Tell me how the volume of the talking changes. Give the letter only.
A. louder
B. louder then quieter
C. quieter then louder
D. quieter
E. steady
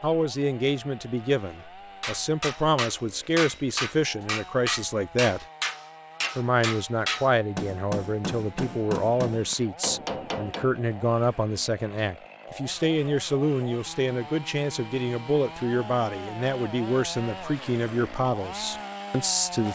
E.